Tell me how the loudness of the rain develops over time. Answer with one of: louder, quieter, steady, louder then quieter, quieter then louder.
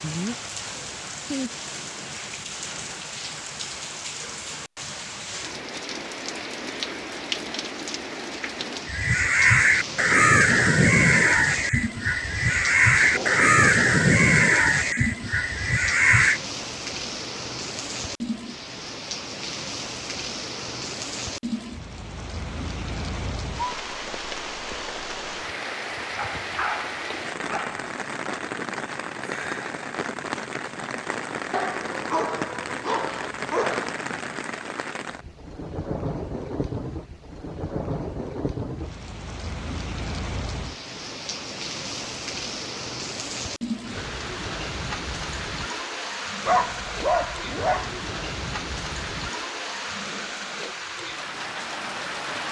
steady.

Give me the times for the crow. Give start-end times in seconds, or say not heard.
8.8-16.4.